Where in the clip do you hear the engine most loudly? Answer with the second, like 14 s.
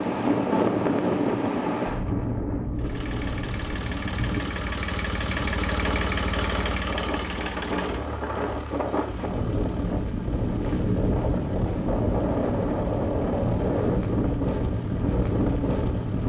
6 s.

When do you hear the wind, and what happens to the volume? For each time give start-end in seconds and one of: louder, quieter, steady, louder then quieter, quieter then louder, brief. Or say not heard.
0.0-16.2 quieter then louder.